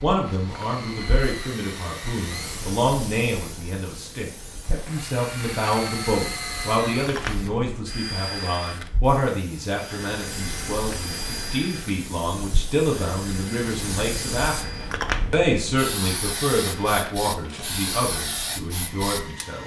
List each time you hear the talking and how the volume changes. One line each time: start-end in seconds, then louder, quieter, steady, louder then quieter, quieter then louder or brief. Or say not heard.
0.0-19.6 steady.